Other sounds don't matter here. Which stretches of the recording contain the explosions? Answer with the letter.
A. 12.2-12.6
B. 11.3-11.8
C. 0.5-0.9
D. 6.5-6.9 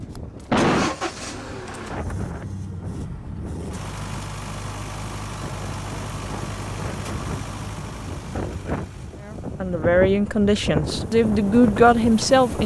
C.